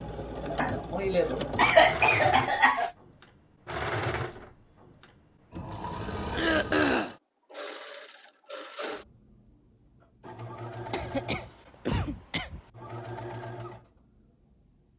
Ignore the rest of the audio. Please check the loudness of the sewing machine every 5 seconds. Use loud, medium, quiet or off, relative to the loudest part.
loud, medium, medium.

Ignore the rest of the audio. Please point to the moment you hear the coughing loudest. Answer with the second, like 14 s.
2 s.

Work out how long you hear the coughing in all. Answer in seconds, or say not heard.
5 s.